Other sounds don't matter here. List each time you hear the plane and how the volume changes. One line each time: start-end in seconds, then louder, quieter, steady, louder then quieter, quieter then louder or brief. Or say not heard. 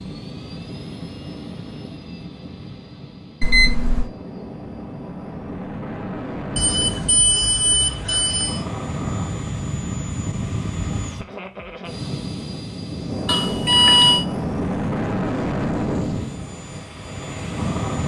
0.0-18.0 louder.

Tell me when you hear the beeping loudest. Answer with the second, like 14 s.
14 s.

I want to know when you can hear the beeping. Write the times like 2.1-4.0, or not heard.
3.4-4.1, 6.5-8.6, 13.2-14.2.